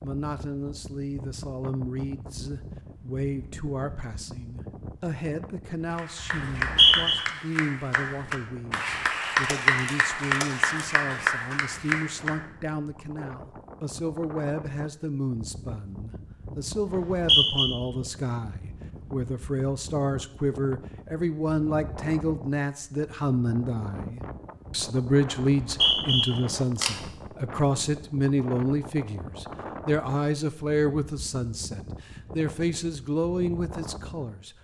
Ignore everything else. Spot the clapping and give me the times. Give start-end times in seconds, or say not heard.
5.9-12.4.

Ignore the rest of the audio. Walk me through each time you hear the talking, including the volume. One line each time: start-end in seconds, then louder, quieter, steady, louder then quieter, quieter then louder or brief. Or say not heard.
0.0-34.5 louder.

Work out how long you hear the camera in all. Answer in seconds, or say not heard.
2 s.